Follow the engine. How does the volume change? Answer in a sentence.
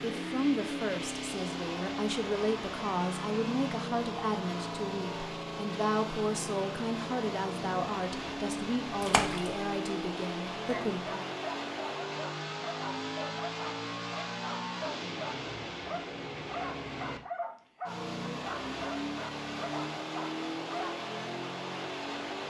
The volume of the engine stays about the same.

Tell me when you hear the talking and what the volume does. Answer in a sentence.
The talking can be heard from 0.0 to 11.2 s, at a steady volume.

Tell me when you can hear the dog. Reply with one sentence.
You can hear the dog from 10.6 to 20.9 s.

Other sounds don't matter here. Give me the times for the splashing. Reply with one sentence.
The splashing can be heard from 9.0 to 9.6 s.